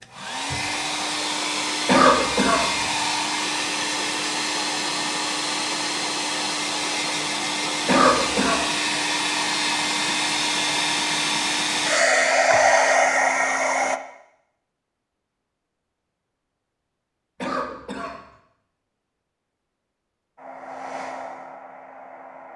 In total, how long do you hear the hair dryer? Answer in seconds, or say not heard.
16 s.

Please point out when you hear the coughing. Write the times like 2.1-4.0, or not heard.
1.9-2.9, 7.8-8.6, 17.4-18.2.